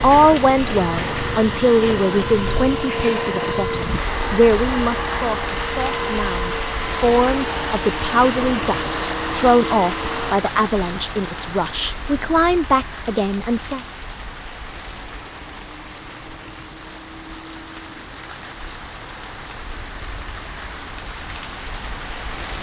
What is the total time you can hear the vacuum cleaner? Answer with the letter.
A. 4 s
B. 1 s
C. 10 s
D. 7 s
C.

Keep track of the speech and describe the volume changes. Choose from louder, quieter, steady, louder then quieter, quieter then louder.
steady.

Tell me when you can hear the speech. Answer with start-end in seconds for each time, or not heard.
0.0-13.8.